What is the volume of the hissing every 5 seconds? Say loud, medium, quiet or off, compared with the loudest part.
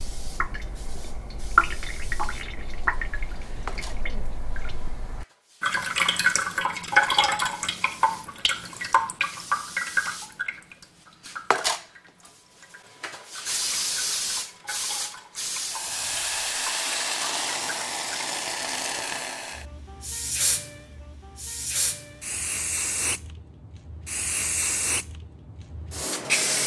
quiet, quiet, loud, loud, loud, loud.